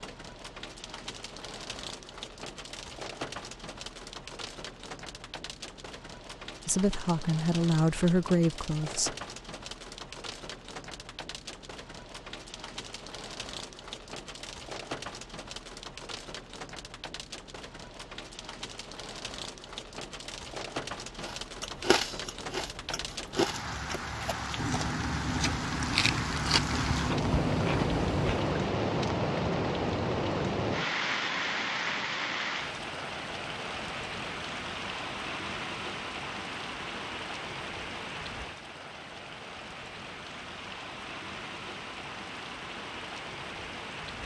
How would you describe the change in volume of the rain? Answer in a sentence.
The loudness of the rain goes up, then down.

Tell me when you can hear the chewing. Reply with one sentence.
The chewing can be heard from 21.2 to 28.6 s.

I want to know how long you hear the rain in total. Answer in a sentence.
You can hear the rain for 44 seconds altogether.